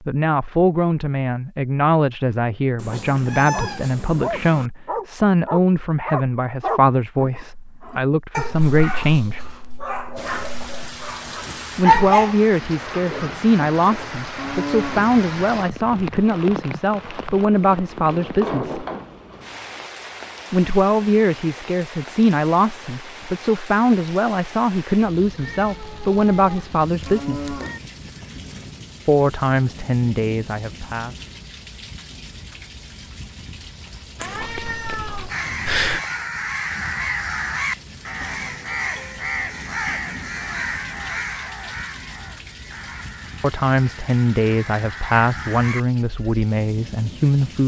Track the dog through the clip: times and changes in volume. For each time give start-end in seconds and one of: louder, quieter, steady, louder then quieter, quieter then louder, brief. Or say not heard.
3.5-13.1 quieter then louder.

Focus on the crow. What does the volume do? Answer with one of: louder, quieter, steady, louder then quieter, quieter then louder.
quieter.